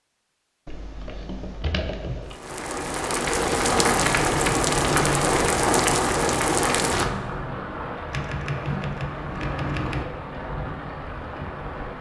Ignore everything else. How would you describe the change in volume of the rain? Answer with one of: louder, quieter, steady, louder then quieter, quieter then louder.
quieter.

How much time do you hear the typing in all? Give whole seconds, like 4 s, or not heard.
5 s.